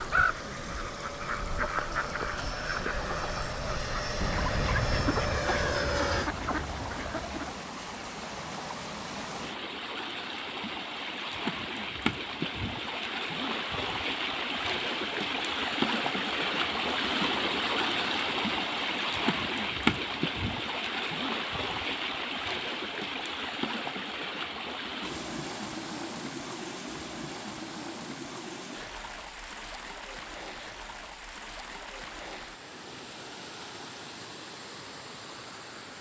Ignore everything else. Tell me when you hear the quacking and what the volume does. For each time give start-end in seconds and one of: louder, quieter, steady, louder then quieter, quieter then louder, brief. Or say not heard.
0.0-7.7 steady.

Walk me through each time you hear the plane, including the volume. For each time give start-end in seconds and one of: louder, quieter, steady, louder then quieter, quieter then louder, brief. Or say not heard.
0.0-6.3 louder.